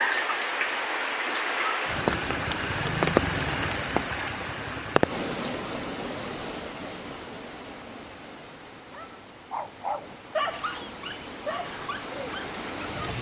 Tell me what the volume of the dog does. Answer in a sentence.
The loudness of the dog goes down.